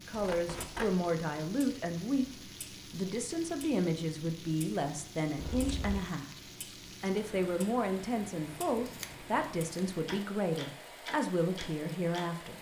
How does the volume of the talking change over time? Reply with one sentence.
The volume of the talking stays about the same.